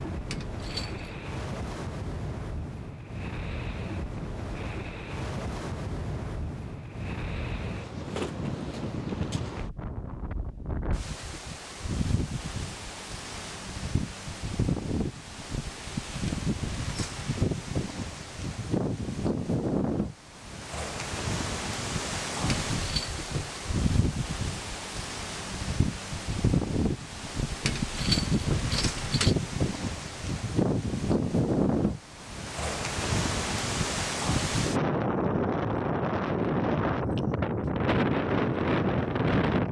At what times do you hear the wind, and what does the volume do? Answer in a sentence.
The wind can be heard from 0.0 to 39.6 s, getting louder.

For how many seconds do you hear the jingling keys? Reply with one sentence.
The jingling keys can be heard for 4 seconds in total.